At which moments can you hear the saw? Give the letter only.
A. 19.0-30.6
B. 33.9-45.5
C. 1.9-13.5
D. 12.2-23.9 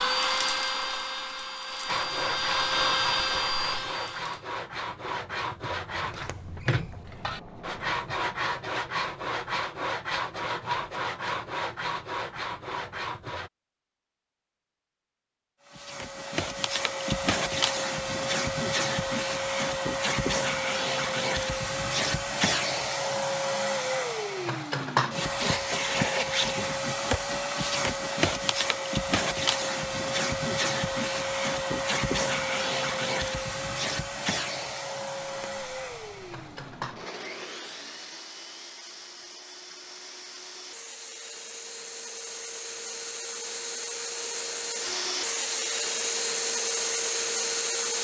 C.